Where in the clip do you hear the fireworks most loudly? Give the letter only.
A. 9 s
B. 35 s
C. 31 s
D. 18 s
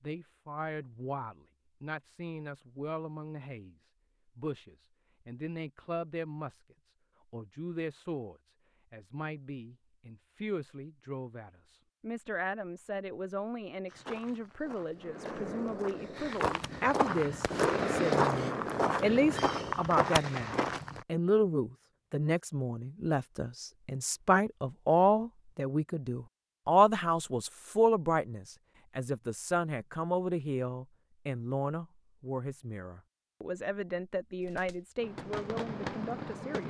D.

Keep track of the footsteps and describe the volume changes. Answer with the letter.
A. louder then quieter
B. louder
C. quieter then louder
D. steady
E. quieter
B.